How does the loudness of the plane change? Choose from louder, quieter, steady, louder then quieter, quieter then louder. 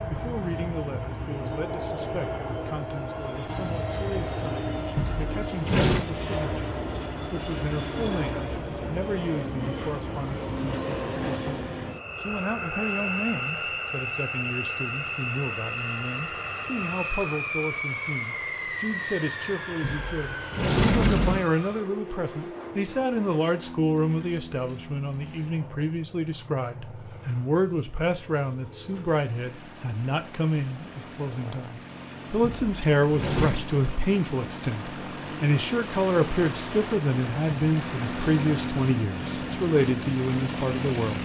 quieter then louder.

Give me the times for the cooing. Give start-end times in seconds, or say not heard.
not heard.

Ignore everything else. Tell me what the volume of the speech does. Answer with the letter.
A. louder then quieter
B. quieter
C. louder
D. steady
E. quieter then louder
C.